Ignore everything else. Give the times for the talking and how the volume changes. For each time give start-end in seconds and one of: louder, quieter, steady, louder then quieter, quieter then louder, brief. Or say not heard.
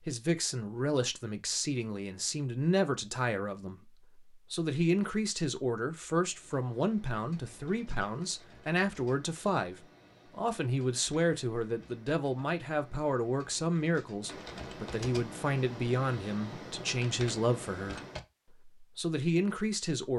0.0-20.1 steady.